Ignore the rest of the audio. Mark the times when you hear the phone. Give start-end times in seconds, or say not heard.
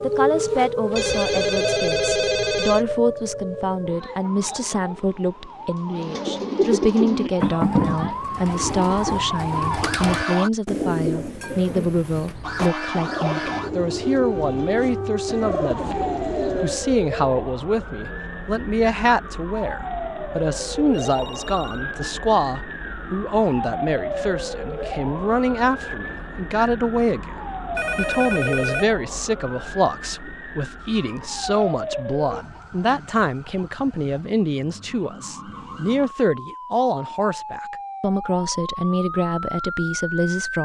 0.9-2.9, 20.9-21.9, 27.8-28.9.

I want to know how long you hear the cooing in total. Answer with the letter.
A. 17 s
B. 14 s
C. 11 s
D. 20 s
C.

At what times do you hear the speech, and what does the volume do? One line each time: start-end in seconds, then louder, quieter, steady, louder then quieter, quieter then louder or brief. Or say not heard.
0.0-40.5 steady.